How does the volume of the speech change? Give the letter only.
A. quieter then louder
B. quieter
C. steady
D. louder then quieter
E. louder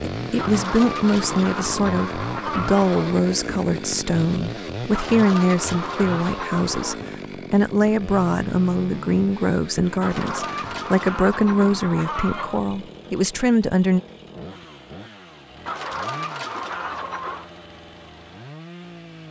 C.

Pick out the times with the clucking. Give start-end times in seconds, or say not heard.
0.3-3.2, 4.9-7.0, 10.0-12.6, 15.7-17.5.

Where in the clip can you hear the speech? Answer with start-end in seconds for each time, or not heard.
0.0-14.0.